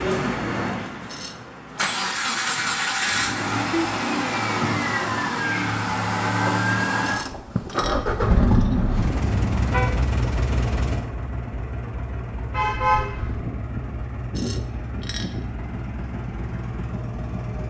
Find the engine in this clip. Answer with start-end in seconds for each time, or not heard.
0.0-17.6.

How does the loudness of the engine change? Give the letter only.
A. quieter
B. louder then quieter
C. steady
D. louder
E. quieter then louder
A.